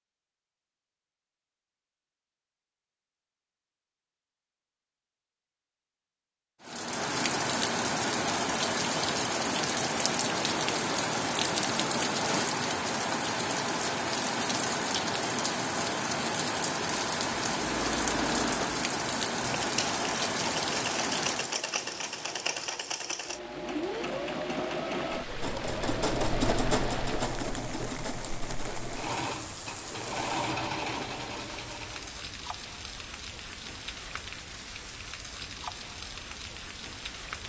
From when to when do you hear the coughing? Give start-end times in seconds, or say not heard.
not heard.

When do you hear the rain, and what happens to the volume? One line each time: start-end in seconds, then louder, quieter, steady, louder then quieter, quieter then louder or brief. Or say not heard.
6.6-37.4 quieter.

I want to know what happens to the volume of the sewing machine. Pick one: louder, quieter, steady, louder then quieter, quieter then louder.
steady.